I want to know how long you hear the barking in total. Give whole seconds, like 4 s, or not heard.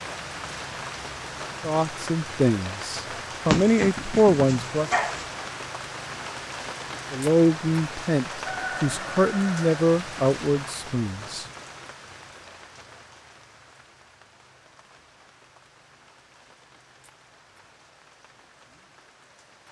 2 s.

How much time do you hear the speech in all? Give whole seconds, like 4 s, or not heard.
8 s.